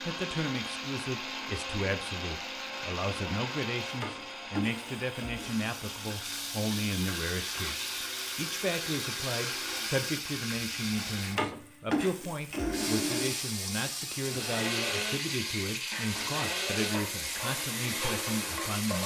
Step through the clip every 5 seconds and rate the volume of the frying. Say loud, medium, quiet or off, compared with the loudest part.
medium, loud, loud, loud.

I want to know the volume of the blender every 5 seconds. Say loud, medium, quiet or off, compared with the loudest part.
loud, medium, loud, loud.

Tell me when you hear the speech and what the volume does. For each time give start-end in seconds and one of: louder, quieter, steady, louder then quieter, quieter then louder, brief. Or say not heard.
0.0-19.0 steady.